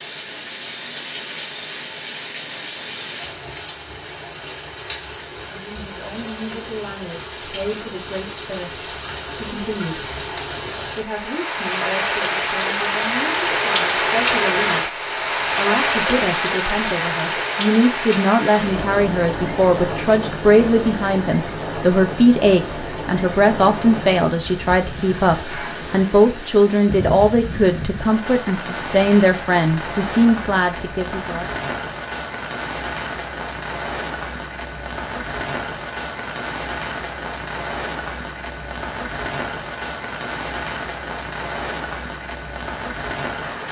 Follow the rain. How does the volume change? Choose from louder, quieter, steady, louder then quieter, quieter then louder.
louder then quieter.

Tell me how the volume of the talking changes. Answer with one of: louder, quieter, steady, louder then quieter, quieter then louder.
louder.